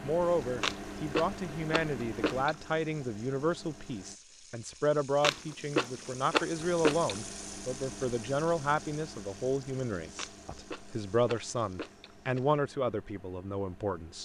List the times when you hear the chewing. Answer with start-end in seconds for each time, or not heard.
0.6-2.5, 5.2-7.2, 10.2-12.4.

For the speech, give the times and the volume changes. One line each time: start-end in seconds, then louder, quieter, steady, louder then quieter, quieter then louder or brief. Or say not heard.
0.0-14.2 steady.